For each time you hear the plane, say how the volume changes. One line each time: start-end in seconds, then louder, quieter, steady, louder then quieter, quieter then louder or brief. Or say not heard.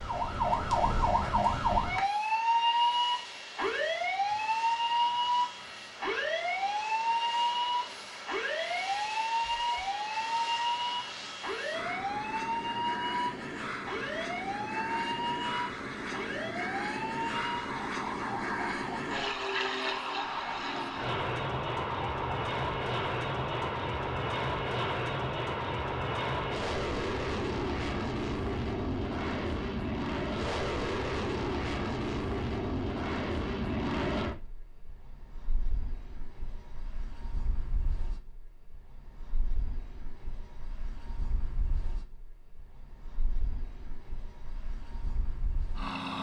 0.0-46.1 louder then quieter.